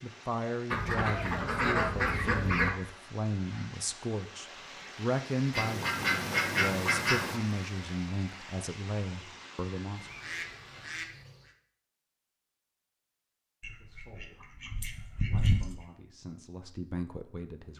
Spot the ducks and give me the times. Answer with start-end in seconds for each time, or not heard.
0.7-2.7, 5.5-7.4, 9.9-11.5, 13.6-15.8.